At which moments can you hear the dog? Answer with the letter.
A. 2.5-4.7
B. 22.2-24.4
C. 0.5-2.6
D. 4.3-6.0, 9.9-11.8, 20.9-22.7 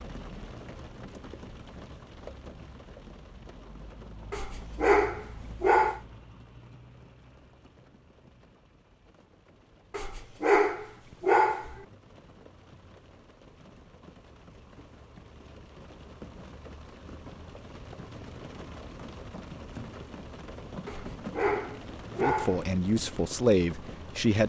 D.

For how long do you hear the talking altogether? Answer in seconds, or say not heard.
2 s.